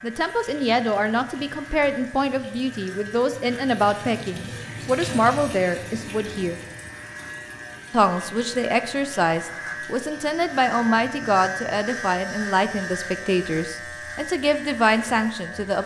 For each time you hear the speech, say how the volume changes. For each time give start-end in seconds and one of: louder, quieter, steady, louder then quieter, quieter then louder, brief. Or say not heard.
0.0-6.6 steady
7.9-15.8 steady.